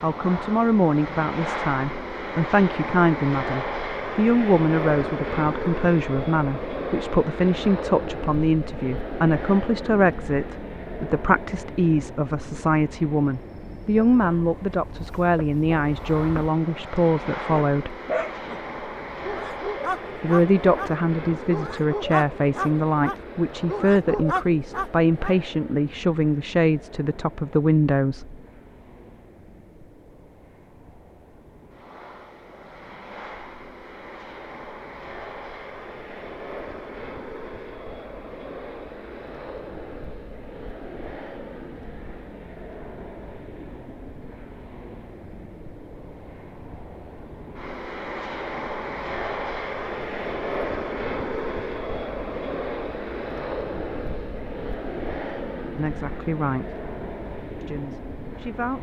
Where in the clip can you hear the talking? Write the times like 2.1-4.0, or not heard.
0.0-17.9, 20.2-28.4, 55.8-56.8, 57.6-58.7.